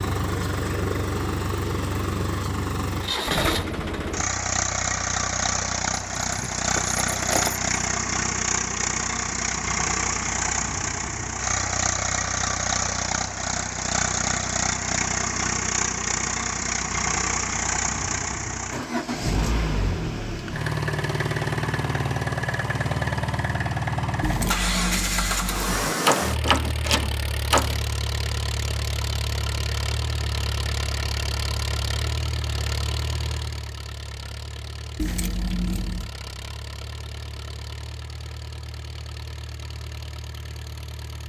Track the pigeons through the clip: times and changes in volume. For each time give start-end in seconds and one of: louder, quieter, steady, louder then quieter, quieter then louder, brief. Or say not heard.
not heard.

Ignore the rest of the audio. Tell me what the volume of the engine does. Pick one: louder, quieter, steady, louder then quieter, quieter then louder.
quieter.